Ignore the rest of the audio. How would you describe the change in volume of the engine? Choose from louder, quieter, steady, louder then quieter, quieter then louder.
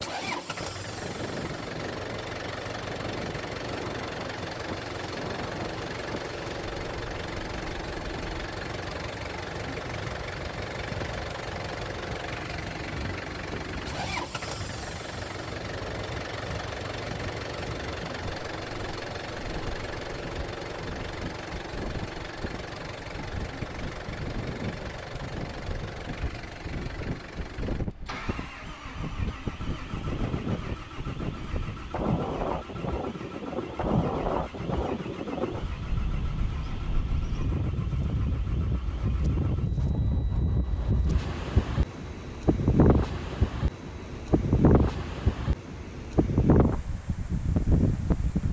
quieter.